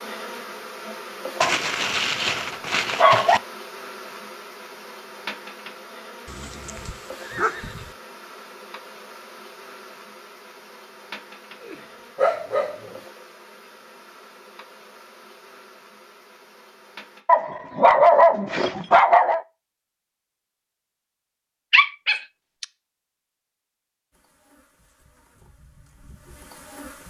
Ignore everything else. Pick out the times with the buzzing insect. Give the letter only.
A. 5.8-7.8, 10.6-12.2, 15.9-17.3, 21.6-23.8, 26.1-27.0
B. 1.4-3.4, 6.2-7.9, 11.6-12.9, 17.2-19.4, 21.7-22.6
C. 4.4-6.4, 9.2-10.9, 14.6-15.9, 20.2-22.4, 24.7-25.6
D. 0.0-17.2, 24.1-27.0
D.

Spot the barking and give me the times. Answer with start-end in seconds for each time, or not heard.
1.4-3.4, 6.2-7.9, 11.6-12.9, 17.2-19.4, 21.7-22.6.